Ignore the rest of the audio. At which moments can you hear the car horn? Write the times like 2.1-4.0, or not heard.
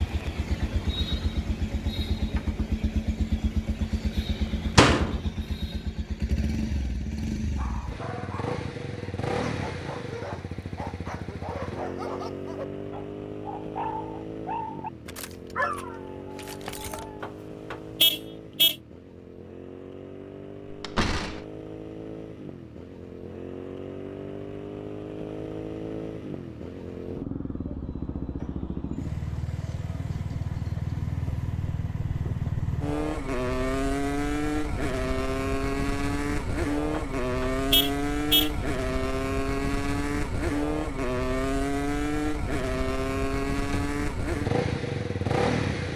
17.2-18.8, 36.9-38.5.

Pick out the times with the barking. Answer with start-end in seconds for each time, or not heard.
7.5-17.2.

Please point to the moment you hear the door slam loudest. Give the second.
5 s.